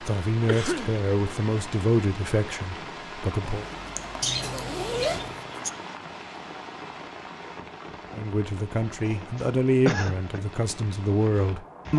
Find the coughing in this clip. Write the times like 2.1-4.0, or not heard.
0.5-1.0, 4.2-5.7, 9.0-10.4.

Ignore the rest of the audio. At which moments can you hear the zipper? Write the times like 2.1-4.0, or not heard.
3.5-5.3.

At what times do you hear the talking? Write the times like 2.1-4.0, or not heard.
0.0-3.6, 8.2-11.9.